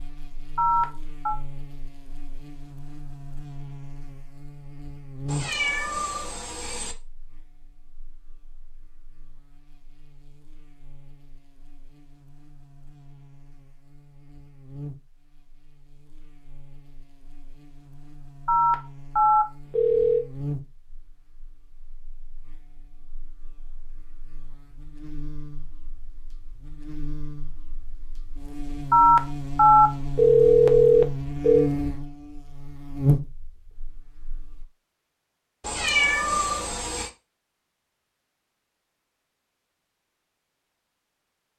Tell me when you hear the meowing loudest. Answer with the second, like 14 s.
36 s.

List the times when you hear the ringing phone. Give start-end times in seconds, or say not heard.
0.6-1.4, 18.4-20.2, 28.9-31.7.